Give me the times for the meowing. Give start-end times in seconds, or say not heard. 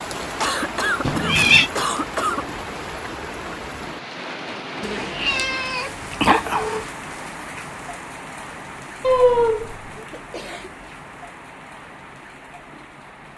1.1-1.7, 4.8-6.8, 9.0-10.1.